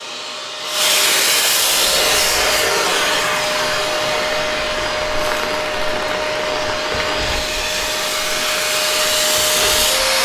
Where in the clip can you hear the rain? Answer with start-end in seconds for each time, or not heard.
1.7-10.2.